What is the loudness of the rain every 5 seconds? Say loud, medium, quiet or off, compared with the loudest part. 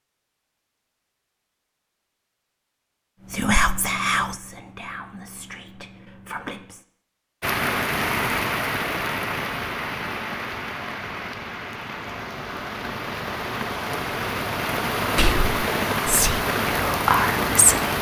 off, loud, medium, loud.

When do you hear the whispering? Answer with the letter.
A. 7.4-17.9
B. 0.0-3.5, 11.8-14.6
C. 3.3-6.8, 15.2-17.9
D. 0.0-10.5
C.